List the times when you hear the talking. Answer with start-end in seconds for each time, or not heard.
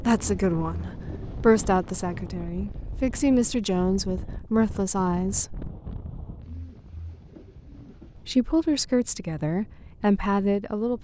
0.0-5.7, 8.2-10.9.